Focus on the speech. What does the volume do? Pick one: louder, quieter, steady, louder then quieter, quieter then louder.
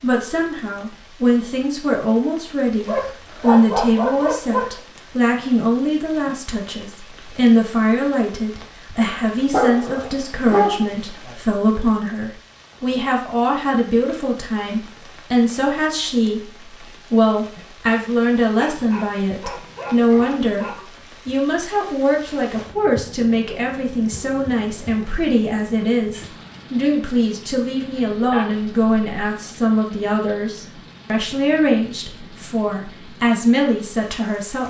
steady.